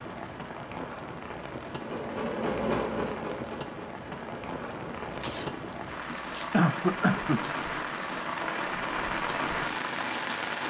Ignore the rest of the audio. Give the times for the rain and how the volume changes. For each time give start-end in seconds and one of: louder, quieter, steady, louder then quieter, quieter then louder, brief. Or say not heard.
0.0-10.6 louder.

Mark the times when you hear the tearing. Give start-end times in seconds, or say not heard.
5.1-6.6.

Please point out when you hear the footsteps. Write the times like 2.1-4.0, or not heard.
not heard.